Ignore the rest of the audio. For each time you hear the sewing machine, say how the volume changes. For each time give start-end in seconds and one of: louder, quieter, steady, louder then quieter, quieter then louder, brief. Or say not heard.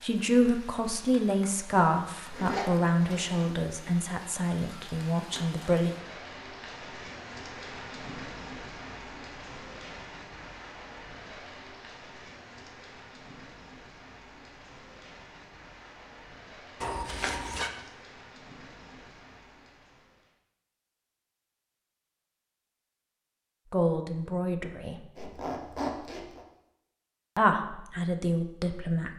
not heard.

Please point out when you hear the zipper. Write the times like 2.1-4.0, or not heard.
2.3-3.5, 16.8-17.7, 25.1-26.4.